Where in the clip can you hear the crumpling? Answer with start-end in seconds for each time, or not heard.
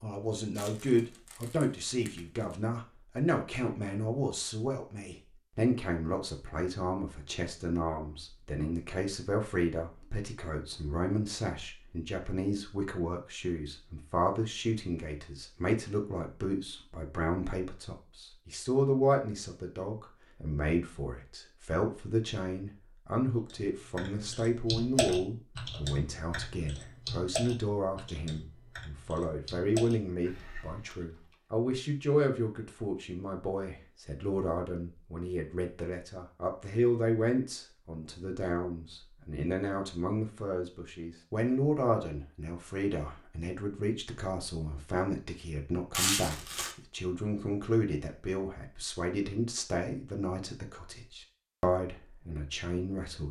0.6-2.5, 45.9-46.8.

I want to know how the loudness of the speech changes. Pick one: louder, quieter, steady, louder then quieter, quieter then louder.
steady.